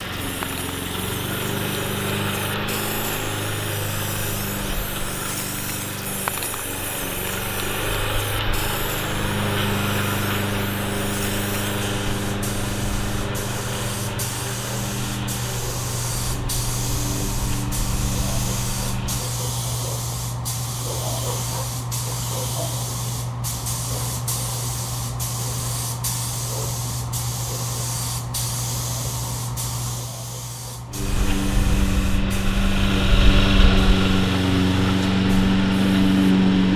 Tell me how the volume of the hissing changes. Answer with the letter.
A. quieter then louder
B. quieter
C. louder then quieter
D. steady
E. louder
E.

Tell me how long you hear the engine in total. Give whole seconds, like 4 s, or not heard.
25 s.